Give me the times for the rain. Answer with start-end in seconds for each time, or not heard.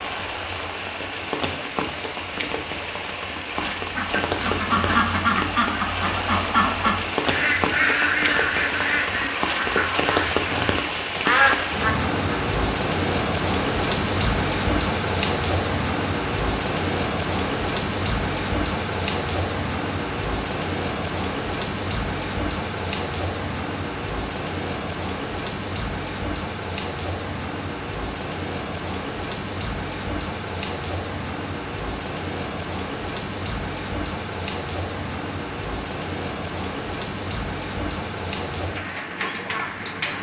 0.0-40.1.